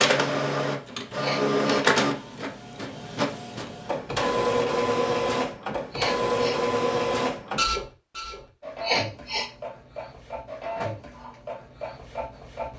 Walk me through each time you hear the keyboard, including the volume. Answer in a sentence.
The keyboard can't be heard in this clip.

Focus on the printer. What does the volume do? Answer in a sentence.
The volume of the printer goes down.